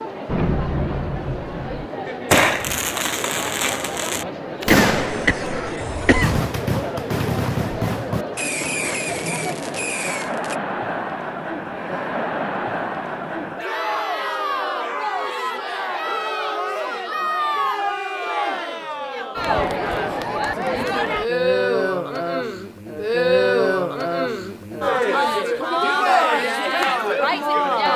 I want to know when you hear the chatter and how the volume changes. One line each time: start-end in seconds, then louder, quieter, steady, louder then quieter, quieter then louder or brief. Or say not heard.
0.0-27.9 louder.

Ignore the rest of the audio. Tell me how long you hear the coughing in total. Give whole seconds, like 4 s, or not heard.
2 s.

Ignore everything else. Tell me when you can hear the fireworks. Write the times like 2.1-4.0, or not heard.
0.2-10.6.